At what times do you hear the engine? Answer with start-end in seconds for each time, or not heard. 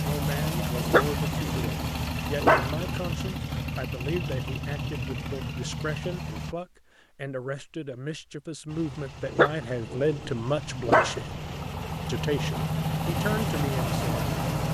0.0-6.5, 8.7-14.6.